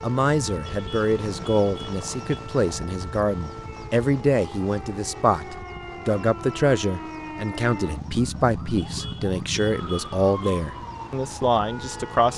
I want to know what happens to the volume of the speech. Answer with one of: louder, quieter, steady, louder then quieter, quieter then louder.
steady.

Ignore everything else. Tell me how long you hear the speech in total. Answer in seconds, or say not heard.
12 s.